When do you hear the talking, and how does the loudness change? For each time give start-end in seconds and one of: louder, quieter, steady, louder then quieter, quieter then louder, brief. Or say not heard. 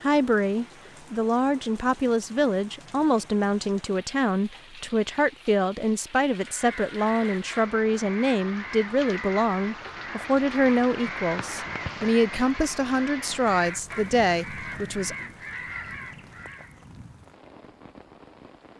0.0-15.2 steady.